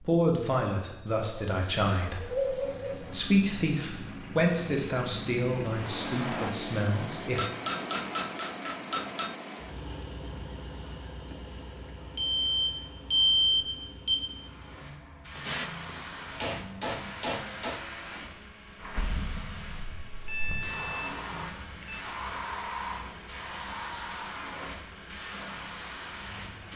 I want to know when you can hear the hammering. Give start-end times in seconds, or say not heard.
7.3-9.3, 15.3-17.9.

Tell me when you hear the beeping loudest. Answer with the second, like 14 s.
13 s.